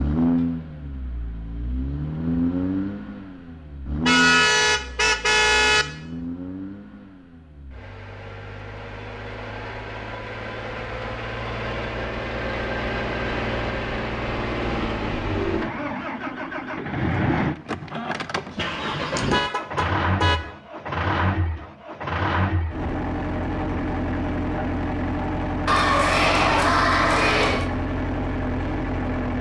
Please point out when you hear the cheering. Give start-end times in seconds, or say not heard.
25.6-27.7.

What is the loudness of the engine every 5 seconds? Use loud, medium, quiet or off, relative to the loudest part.
loud, medium, loud, loud, loud, loud.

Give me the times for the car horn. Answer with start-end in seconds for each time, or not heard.
4.0-5.8, 19.1-20.4.